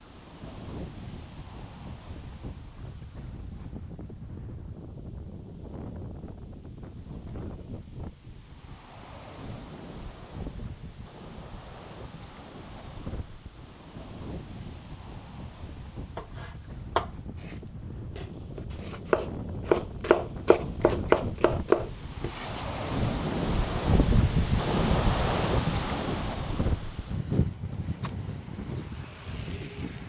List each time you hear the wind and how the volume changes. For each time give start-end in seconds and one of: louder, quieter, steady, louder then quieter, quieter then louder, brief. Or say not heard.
0.0-30.0 louder.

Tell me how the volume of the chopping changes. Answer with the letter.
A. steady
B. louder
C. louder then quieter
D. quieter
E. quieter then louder
E.